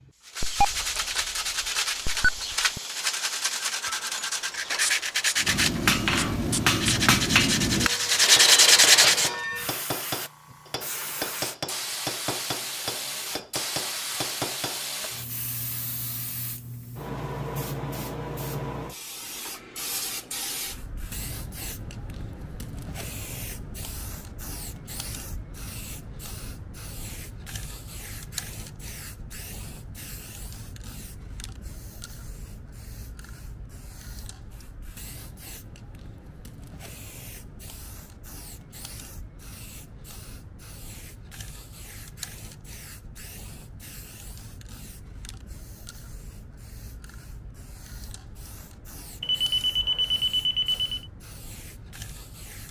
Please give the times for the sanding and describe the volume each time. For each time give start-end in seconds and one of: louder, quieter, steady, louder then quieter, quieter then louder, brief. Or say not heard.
0.2-9.3 louder.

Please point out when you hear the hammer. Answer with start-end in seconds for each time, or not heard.
5.4-15.1.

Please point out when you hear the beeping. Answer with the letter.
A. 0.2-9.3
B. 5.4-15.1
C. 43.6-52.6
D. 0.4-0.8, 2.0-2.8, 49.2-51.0
D.